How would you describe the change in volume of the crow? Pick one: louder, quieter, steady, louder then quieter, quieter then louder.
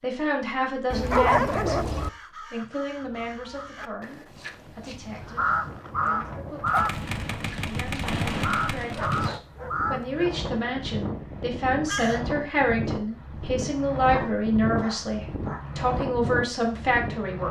louder then quieter.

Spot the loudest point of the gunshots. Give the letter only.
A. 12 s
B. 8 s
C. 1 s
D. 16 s
B.